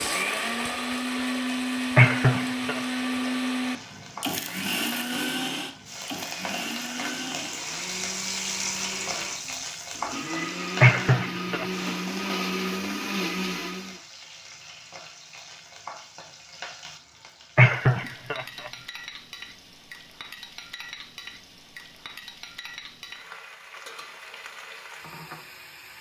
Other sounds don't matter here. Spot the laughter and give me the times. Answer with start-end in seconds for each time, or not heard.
1.9-2.8, 10.8-11.9, 17.6-18.7.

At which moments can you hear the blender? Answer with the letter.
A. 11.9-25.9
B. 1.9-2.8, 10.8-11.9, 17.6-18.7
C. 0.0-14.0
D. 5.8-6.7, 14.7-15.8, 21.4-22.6
C.